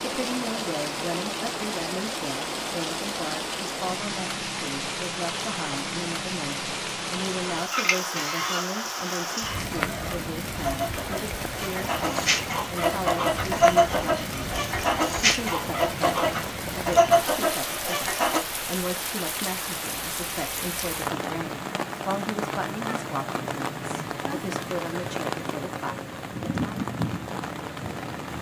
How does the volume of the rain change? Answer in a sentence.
The loudness of the rain stays about the same.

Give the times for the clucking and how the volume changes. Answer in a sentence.
The clucking can be heard from 7.7 to 18.4 s, getting louder.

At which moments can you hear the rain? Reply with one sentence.
The rain can be heard from 0.0 to 28.3 s.